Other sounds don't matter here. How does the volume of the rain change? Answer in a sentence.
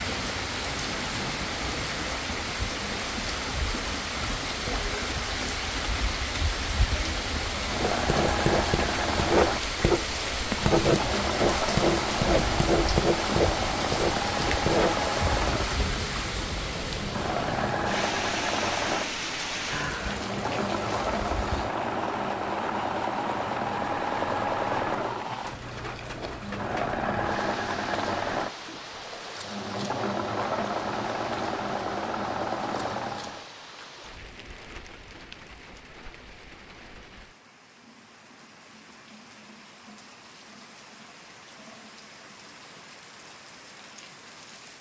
The volume of the rain goes down.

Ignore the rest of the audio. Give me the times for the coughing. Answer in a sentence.
The coughing can't be heard in this clip.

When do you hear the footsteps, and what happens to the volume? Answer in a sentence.
You can't hear the footsteps here.